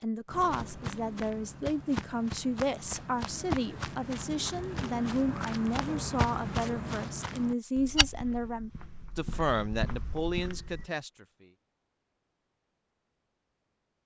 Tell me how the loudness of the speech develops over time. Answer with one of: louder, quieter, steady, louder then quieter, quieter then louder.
steady.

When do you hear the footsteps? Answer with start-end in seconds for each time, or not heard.
0.2-10.8.